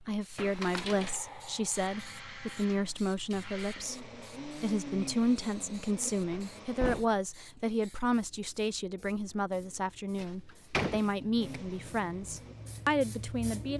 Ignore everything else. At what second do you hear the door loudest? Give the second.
11 s.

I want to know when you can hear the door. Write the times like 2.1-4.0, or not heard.
0.3-1.1, 6.3-7.2, 10.2-11.6.